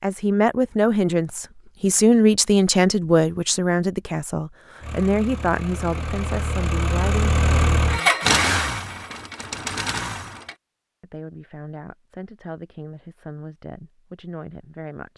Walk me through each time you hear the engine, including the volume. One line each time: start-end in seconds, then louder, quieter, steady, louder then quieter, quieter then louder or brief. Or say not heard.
4.8-10.6 louder then quieter.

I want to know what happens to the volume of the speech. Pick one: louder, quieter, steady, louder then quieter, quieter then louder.
quieter.